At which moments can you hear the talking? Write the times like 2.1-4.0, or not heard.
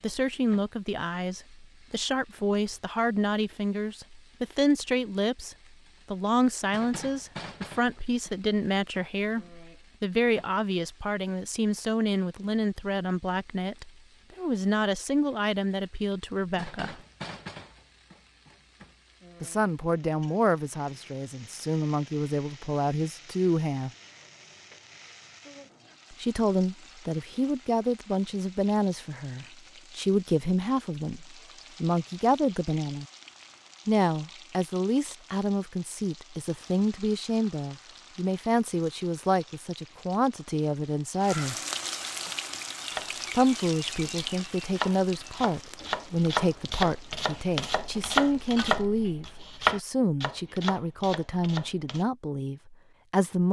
0.0-16.9, 19.4-23.9, 26.1-33.0, 33.9-41.6, 43.3-53.4.